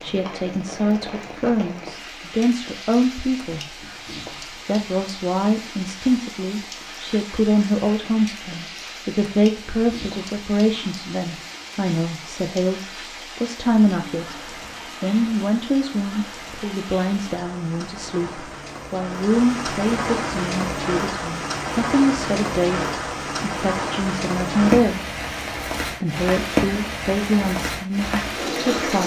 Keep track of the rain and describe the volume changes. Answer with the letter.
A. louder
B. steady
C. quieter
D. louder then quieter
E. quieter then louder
A.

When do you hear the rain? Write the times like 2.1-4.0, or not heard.
0.0-29.0.